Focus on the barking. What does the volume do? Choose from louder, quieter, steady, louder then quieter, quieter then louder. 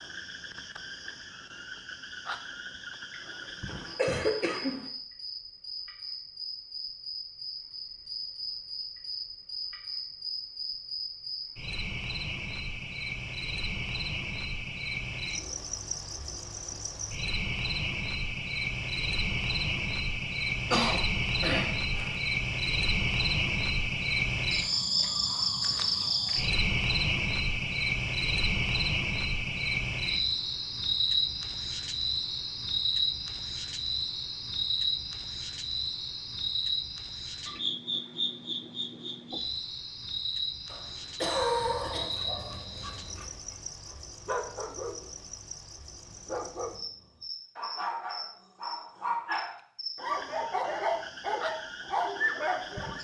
louder.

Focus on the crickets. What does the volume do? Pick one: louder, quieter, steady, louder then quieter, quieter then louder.
louder then quieter.